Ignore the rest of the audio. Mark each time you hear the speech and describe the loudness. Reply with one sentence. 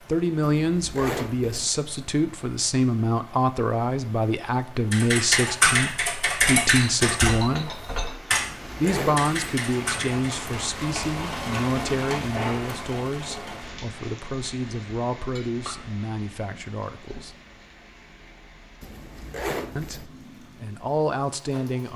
The speech can be heard from 0.1 to 7.8 s, at a steady volume; from 8.8 to 17.4 s, getting quieter; and briefly from 19.8 to 21.9 s.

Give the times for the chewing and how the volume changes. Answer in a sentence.
The chewing can't be heard in this clip.